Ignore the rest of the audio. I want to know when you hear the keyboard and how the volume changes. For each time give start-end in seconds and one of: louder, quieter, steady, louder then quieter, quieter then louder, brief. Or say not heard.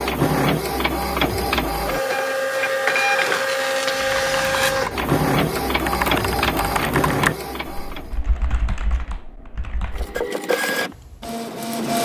3.9-10.2 louder then quieter.